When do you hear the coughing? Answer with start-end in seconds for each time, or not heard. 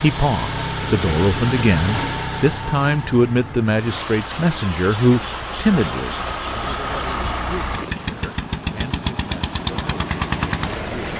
not heard.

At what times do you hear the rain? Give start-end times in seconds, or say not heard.
3.6-11.1.